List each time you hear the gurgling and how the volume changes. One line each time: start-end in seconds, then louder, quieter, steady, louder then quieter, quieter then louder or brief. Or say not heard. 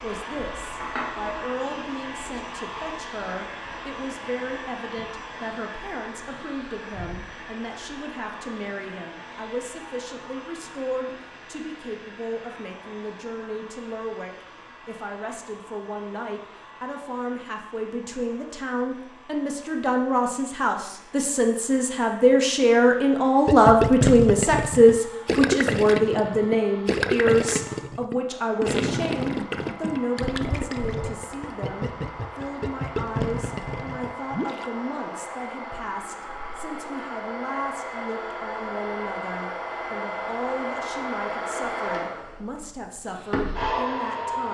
23.4-34.7 quieter.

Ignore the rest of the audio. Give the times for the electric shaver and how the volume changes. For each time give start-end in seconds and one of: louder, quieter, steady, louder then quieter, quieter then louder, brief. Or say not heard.
not heard.